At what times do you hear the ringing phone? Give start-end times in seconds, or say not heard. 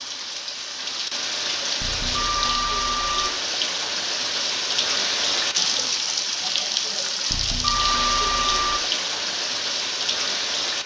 1.8-3.3, 7.3-8.8.